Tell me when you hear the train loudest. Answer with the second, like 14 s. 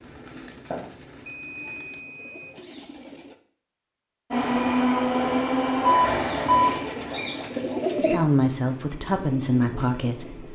5 s.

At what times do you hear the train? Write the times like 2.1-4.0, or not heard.
4.3-10.5.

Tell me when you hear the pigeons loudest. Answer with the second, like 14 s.
8 s.